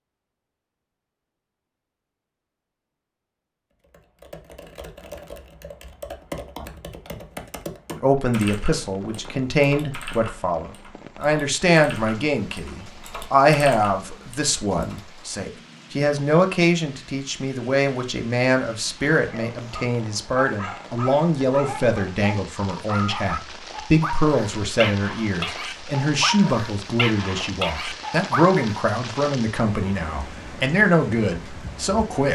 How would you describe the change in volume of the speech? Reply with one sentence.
The volume of the speech stays about the same.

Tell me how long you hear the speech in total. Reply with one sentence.
You can hear the speech for 24 seconds altogether.